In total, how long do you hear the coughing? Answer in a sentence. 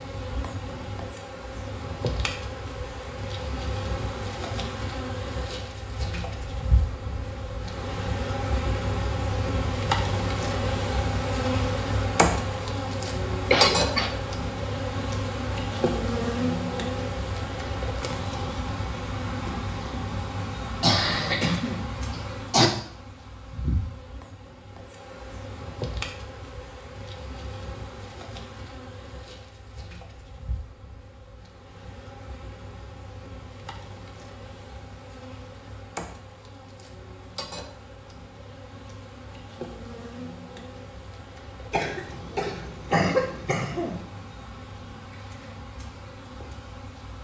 The coughing can be heard for 5 seconds in total.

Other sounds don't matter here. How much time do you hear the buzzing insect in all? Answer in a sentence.
The buzzing insect can be heard for 47 seconds in total.